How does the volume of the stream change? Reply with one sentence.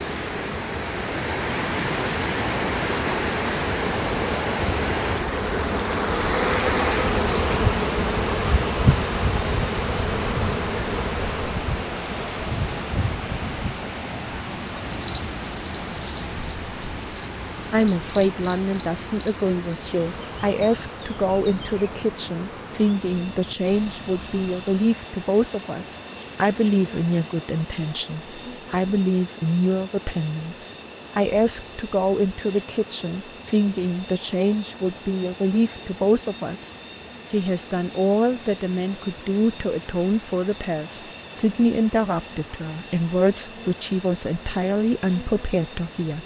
The loudness of the stream goes down.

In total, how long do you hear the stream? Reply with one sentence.
The stream can be heard for 46 seconds in total.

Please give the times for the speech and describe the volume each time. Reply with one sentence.
You can hear the speech from 17.7 to 46.2 s, at a steady volume.